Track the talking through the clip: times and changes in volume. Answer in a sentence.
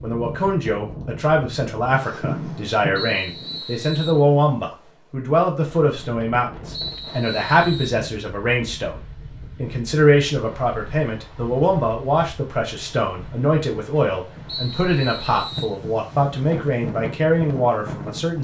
The talking can be heard from 0.0 to 18.3 s, at a steady volume.